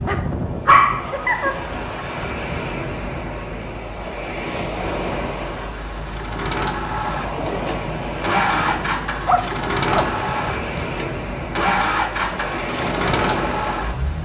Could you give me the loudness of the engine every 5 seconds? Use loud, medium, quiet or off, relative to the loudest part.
off, loud, loud.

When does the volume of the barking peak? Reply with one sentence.
The loudest moment of the barking is at 1 second.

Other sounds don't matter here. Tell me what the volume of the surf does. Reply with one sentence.
The loudness of the surf stays about the same.